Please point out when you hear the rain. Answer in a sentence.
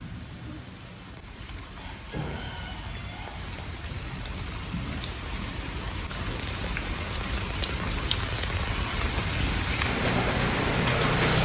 You can hear the rain from 0.0 to 11.3 s.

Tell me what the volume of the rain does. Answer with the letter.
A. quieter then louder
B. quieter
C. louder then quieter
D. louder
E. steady
D.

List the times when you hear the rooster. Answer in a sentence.
The rooster can be heard from 1.8 to 3.8 s.